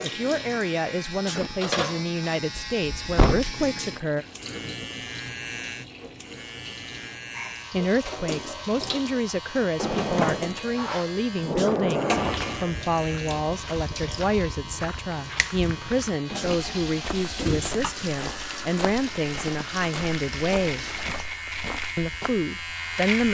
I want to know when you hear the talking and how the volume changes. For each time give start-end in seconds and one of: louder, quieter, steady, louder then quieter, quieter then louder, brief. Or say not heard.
0.0-4.2 steady
7.7-20.9 steady
21.9-23.2 brief.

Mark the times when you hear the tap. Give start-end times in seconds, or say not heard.
0.0-21.3.